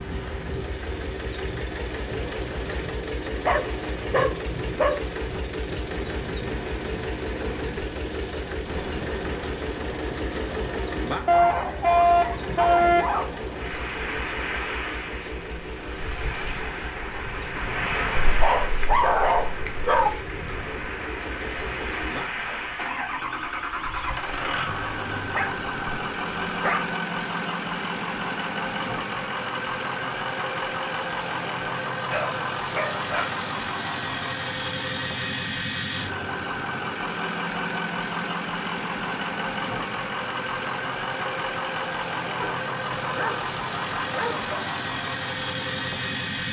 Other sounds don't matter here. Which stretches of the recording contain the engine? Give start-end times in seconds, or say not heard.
0.0-46.4.